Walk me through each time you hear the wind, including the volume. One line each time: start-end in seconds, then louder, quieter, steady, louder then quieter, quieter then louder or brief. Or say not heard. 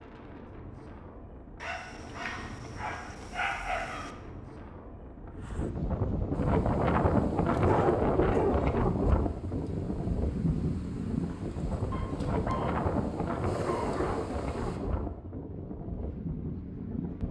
0.0-17.2 louder then quieter.